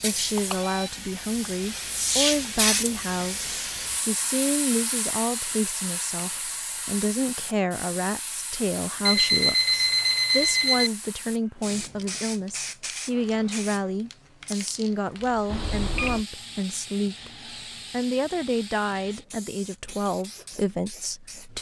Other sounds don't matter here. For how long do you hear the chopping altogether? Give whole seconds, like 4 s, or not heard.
not heard.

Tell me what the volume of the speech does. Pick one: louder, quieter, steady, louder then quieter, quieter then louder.
steady.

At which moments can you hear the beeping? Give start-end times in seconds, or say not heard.
0.3-0.9, 9.1-10.9, 15.5-16.2.